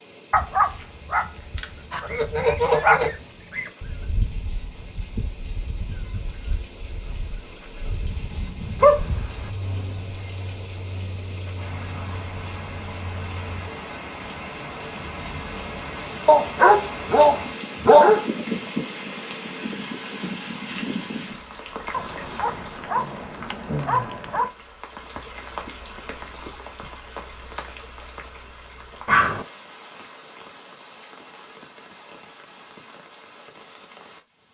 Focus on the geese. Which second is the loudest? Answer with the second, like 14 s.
3 s.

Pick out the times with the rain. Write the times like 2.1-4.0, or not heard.
0.0-34.4.